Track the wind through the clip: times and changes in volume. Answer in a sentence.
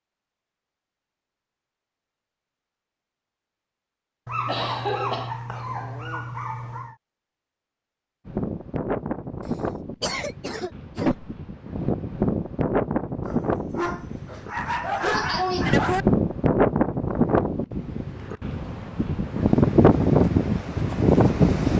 The wind can be heard from 8.2 to 21.7 s, getting louder.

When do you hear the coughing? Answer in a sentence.
You can hear the coughing from 4.5 to 5.3 s, from 9.4 to 11.3 s and from 15.0 to 15.7 s.